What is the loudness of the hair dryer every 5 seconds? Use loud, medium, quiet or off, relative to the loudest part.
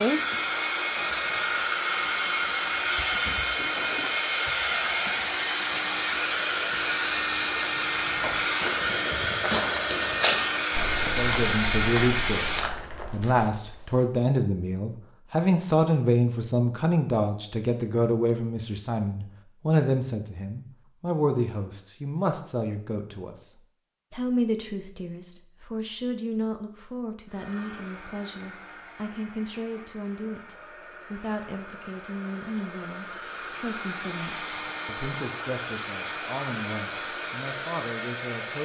loud, loud, loud, off, off, quiet, quiet, medium.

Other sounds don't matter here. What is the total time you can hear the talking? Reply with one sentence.
The talking can be heard for 27 seconds in total.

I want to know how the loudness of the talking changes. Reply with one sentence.
The volume of the talking goes down.